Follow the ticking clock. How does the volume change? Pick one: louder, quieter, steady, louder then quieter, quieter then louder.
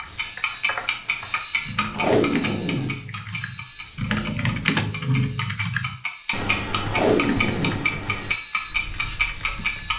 quieter then louder.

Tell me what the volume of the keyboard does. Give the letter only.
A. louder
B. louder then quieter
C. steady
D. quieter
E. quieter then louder
B.